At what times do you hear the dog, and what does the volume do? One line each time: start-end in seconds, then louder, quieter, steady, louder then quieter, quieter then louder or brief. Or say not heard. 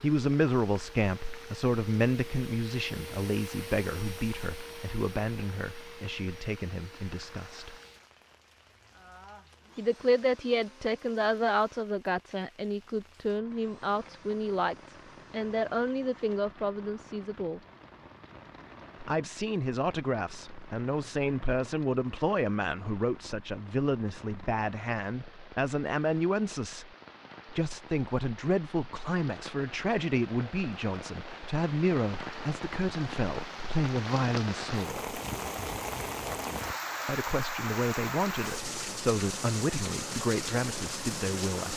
not heard.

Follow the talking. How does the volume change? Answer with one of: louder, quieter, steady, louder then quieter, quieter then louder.
steady.